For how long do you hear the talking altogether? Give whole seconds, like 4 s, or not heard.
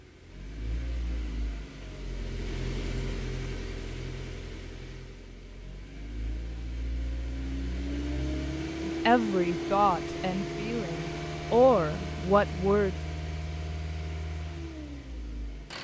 4 s.